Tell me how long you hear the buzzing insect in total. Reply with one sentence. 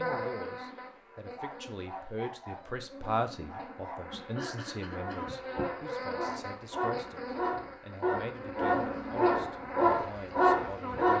The buzzing insect can be heard for 11 seconds in total.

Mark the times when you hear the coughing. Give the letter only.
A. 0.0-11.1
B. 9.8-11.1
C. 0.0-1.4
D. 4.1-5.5
D.